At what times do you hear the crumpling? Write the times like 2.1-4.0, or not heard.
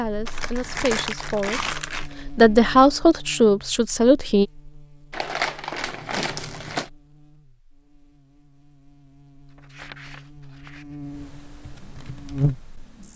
0.2-2.1, 5.1-6.9, 9.5-10.9.